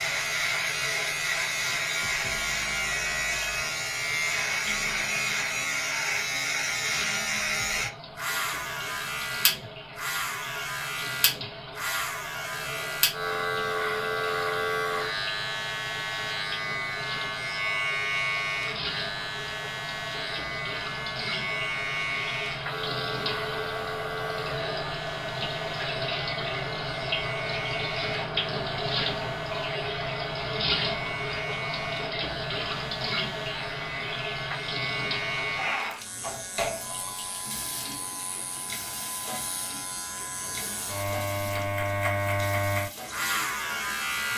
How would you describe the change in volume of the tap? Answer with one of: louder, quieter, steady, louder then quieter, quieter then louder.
louder then quieter.